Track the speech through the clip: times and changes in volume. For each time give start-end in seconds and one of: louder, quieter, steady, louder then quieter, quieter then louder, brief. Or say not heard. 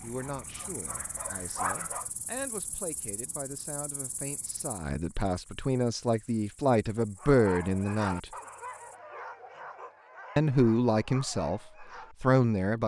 0.0-8.3 louder
10.3-12.8 brief.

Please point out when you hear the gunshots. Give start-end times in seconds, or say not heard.
not heard.